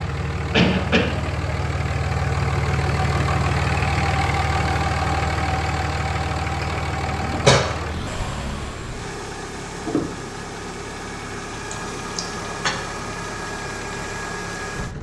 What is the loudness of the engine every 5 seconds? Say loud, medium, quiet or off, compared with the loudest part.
loud, loud, medium.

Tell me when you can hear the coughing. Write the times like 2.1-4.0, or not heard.
0.5-1.2, 6.6-7.6, 11.7-12.7.